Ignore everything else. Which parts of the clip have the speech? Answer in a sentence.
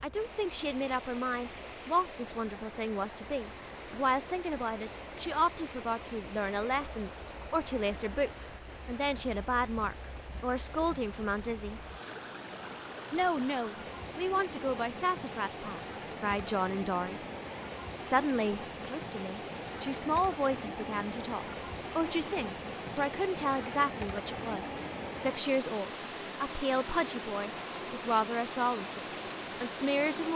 The speech can be heard from 0.0 to 11.8 s, from 13.1 to 17.2 s and from 18.0 to 30.3 s.